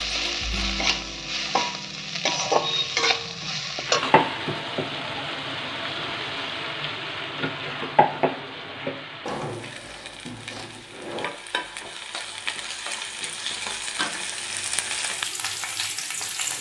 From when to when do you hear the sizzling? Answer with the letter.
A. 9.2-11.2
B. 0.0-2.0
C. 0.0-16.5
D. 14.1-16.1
C.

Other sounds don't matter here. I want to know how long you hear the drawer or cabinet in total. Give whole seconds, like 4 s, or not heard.
2 s.